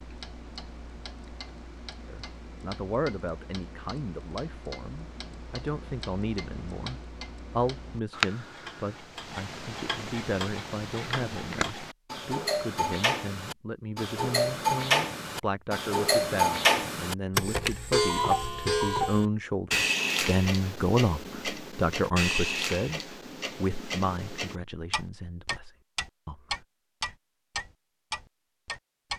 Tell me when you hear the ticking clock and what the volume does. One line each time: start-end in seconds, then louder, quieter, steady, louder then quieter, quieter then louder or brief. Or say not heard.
0.0-29.1 louder then quieter.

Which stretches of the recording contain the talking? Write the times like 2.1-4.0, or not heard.
2.1-26.6.